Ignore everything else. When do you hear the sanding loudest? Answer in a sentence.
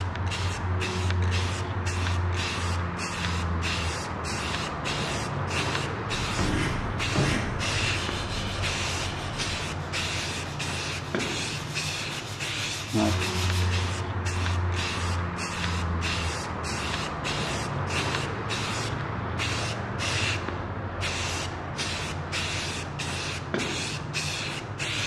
The loudest moment of the sanding is at 7 seconds.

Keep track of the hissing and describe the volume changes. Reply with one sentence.
The volume of the hissing stays about the same.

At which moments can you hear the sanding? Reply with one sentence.
You can hear the sanding from 6.2 to 13.7 s.